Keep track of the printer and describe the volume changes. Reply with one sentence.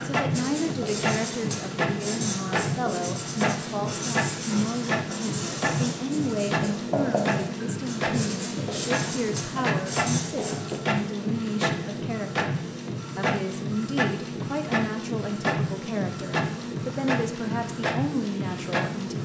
The loudness of the printer stays about the same.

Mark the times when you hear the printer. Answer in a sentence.
You can hear the printer from 0.0 to 19.2 s.